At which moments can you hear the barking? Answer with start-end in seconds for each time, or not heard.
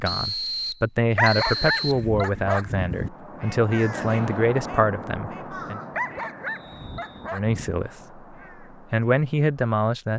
1.1-3.1, 5.9-7.8.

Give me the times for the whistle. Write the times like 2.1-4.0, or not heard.
0.1-2.0, 6.5-7.3.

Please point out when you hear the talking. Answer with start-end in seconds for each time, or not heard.
0.0-5.8, 7.3-10.1.